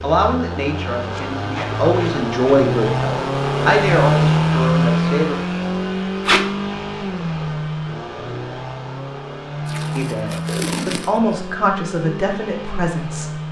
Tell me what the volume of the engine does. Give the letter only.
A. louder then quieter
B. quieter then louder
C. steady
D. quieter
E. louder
A.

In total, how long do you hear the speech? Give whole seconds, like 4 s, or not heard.
9 s.